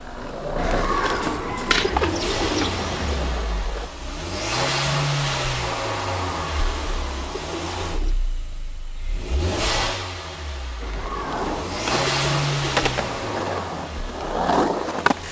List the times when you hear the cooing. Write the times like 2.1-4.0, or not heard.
0.6-3.2, 6.3-8.2, 10.8-13.3.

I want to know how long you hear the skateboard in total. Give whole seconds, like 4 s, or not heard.
8 s.